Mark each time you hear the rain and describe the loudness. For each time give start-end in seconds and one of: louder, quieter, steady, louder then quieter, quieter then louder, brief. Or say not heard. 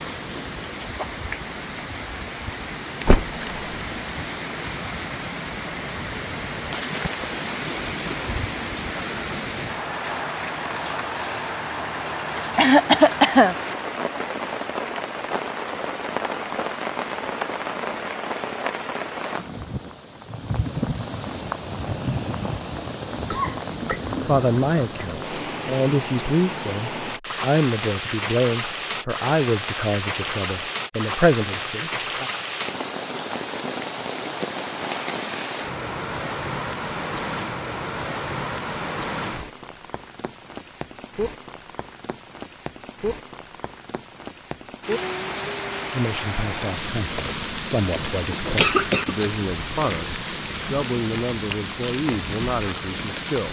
0.0-53.4 steady.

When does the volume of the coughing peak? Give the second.
13 s.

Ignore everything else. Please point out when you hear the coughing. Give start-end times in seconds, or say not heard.
12.6-13.6, 23.1-24.0, 48.5-49.2.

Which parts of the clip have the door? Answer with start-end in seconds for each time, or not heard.
3.0-4.0.